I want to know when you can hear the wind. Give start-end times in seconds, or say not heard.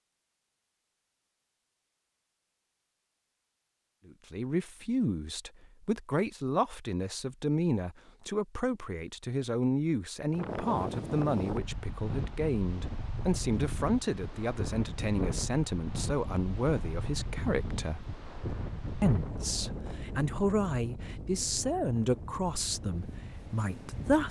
10.3-24.2.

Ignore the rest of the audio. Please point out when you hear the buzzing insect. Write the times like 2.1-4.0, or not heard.
not heard.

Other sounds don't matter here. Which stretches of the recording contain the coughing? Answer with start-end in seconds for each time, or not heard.
not heard.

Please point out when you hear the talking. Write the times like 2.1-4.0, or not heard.
4.0-18.1, 19.0-24.2.